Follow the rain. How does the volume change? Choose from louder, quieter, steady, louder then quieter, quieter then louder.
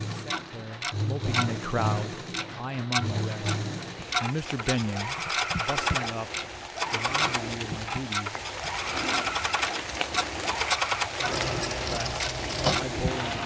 louder.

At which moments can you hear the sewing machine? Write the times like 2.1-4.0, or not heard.
0.0-13.4.